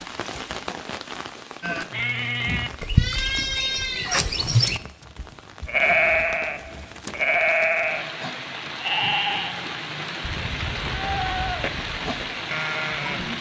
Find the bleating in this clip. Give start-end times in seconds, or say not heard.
1.6-13.3.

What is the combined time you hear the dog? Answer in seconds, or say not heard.
not heard.